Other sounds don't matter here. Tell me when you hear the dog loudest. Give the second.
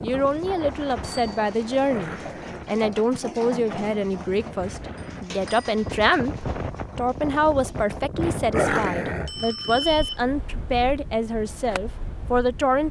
9 s.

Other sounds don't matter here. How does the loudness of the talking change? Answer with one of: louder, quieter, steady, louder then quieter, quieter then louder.
steady.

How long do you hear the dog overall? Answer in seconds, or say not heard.
2 s.